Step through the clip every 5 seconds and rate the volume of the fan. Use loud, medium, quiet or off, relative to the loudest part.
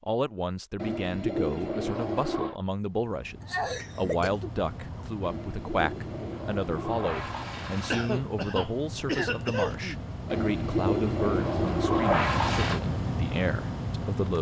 medium, medium, loud.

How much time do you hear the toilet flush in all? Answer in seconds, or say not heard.
7 s.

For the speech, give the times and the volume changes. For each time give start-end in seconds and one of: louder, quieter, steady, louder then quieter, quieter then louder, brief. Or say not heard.
0.0-14.3 steady.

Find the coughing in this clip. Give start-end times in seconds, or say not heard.
3.4-5.0, 7.9-10.0.